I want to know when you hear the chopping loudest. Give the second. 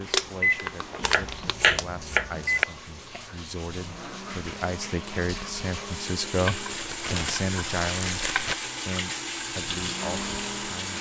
2 s.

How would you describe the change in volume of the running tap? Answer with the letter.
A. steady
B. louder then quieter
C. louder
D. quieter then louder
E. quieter
C.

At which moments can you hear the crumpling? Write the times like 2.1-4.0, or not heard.
0.1-1.9, 6.7-8.6.